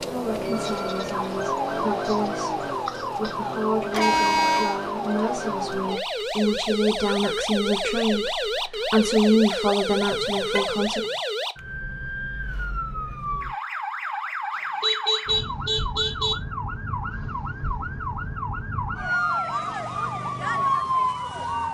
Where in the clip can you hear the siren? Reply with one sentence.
You can hear the siren from 0.0 to 21.6 s.